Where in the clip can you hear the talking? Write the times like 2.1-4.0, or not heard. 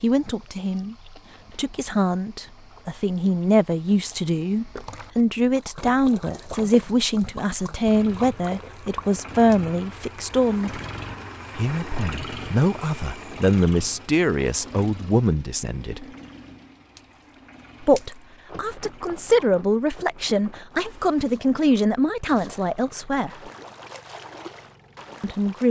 0.0-0.9, 1.6-10.8, 11.6-16.1, 17.8-23.3, 25.2-25.6.